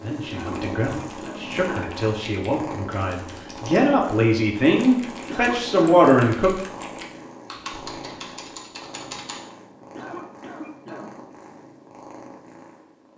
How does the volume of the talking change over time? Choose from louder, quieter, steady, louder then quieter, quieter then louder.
louder.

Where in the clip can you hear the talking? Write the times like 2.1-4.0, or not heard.
0.0-6.5.